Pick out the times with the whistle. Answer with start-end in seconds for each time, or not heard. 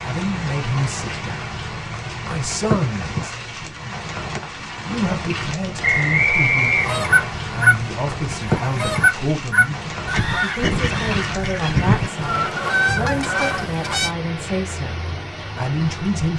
5.8-7.3.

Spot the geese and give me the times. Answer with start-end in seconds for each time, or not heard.
6.8-14.1.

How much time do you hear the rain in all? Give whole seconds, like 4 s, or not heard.
16 s.